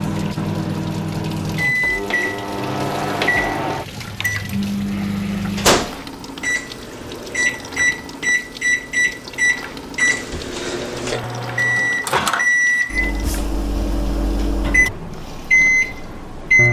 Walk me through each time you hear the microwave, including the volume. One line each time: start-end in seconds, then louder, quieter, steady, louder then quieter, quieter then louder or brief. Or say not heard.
0.0-16.6 steady.